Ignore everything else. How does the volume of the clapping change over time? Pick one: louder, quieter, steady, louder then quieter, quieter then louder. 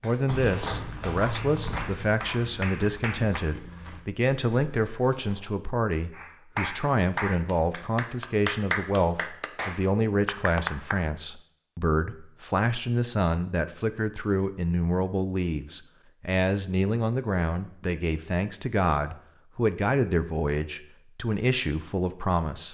louder.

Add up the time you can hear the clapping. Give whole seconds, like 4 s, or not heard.
8 s.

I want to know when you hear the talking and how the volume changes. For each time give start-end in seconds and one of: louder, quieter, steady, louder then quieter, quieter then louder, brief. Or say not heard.
0.0-22.6 steady.